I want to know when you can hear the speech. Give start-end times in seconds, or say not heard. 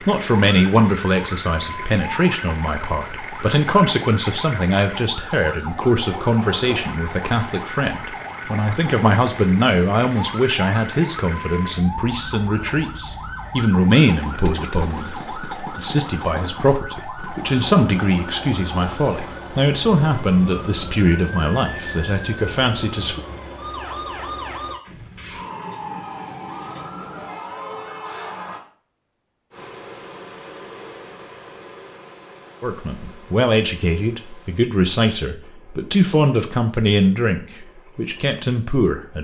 0.1-23.2, 32.6-39.1.